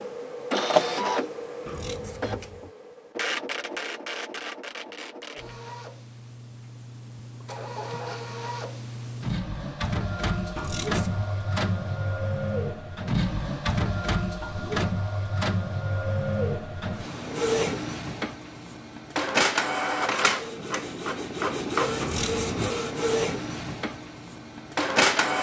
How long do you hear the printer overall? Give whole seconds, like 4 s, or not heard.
25 s.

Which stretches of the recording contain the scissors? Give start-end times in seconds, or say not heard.
1.6-2.7, 10.6-11.3, 21.9-22.6.